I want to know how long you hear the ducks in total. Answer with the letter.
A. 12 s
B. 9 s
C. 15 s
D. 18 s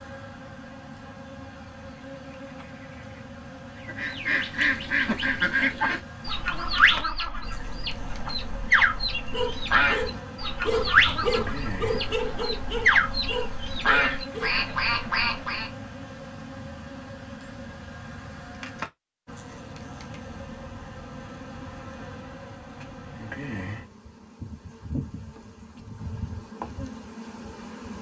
A.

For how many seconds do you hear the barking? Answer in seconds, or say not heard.
5 s.